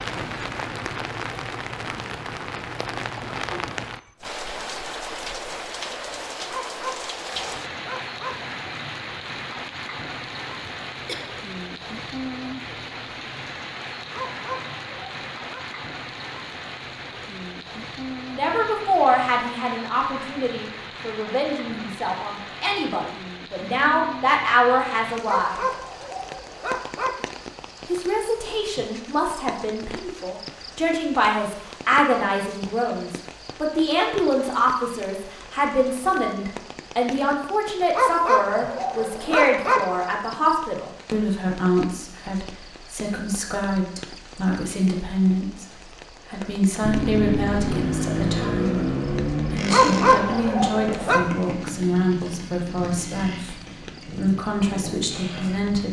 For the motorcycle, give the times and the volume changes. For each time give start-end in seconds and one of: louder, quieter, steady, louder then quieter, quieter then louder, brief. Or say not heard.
46.8-55.8 quieter.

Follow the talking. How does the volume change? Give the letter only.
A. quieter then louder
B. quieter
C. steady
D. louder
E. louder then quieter
C.